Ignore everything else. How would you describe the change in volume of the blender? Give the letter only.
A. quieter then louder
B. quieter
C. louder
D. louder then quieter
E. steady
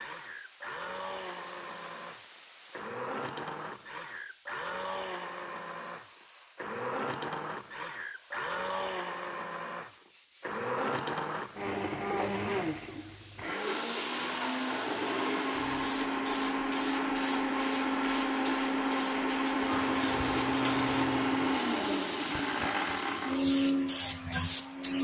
C.